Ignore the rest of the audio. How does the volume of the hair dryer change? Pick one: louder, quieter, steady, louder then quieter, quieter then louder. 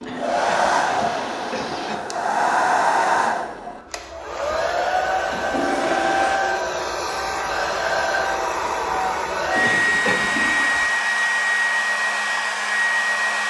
steady.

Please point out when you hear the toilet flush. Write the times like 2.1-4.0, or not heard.
0.0-2.0, 4.8-6.4, 9.6-10.9.